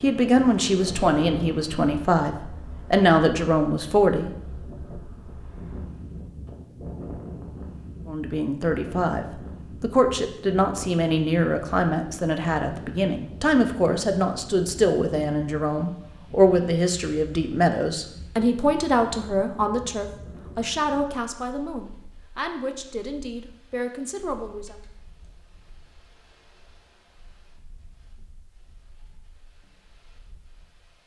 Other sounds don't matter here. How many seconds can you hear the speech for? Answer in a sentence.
The speech can be heard for 21 seconds in total.